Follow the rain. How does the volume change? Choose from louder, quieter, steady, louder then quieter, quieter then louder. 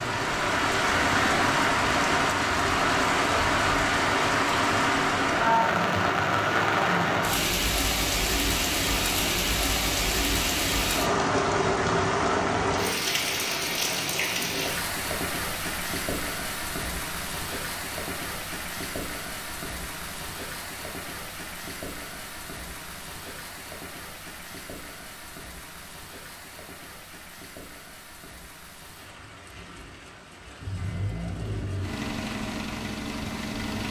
quieter.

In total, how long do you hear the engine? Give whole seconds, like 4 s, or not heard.
3 s.